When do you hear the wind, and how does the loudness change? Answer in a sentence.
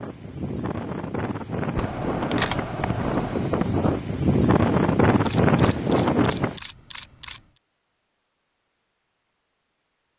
You can hear the wind from 0.0 to 6.6 s, getting louder.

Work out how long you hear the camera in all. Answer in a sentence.
You can hear the camera for 4 seconds altogether.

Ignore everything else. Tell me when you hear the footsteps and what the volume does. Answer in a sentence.
The footsteps can't be heard in this clip.